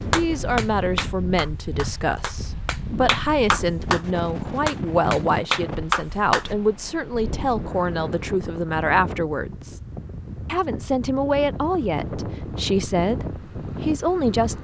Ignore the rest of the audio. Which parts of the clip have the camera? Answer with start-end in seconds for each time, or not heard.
not heard.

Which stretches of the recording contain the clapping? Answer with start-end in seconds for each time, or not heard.
0.0-6.5.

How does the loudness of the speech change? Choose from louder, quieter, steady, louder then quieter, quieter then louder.
steady.